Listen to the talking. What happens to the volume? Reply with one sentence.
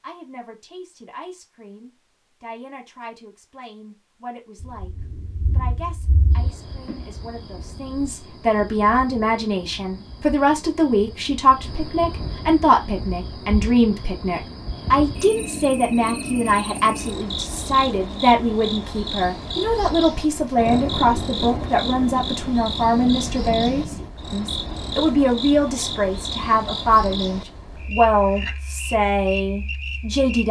The loudness of the talking goes up.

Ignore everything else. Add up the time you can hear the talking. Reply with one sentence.
The talking can be heard for 30 seconds in total.